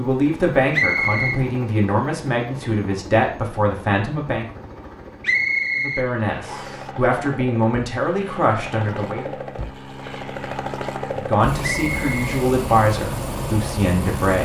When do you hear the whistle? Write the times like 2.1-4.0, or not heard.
0.7-1.4, 5.2-6.8, 11.6-12.2.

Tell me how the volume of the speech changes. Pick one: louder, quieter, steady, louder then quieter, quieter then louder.
steady.